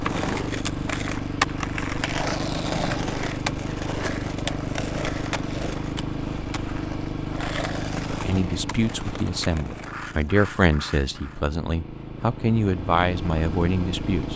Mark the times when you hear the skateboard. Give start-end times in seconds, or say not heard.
0.0-11.4.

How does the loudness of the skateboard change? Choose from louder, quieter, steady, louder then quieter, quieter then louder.
quieter.